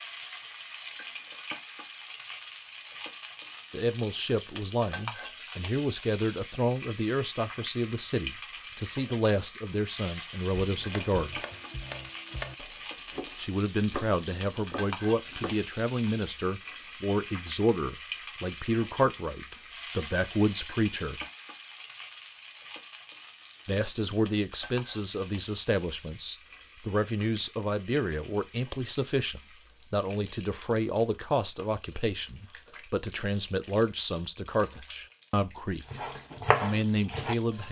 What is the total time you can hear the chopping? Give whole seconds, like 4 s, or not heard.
7 s.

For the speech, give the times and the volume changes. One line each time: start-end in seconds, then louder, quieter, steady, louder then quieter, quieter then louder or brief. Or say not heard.
3.7-11.4 steady
13.3-21.2 steady
23.6-37.6 steady.